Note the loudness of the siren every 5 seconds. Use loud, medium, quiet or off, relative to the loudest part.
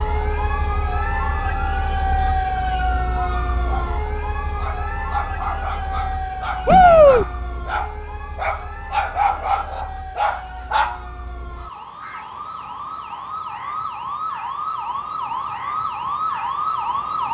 loud, medium, medium, loud.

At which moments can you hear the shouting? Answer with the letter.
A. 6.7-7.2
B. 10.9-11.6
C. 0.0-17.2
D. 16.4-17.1
A.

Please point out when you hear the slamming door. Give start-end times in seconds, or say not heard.
not heard.